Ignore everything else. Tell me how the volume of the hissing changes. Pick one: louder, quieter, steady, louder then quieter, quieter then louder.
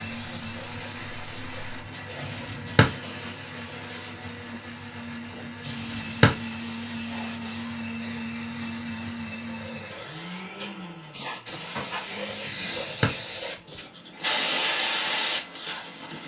louder.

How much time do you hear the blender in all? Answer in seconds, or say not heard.
16 s.